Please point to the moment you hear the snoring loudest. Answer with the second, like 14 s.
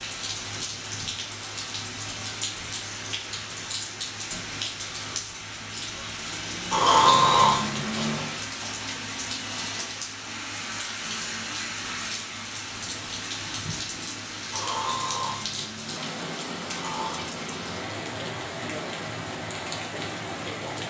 7 s.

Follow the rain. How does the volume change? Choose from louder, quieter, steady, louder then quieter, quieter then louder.
steady.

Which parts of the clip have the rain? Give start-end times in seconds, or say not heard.
0.0-20.8.